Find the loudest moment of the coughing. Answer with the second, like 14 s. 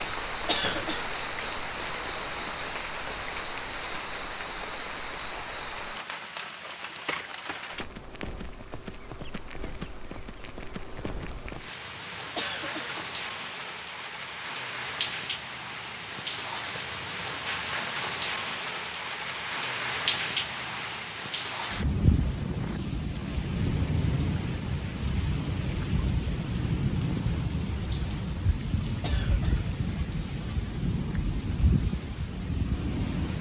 1 s.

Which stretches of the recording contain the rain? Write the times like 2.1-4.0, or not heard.
0.0-33.3.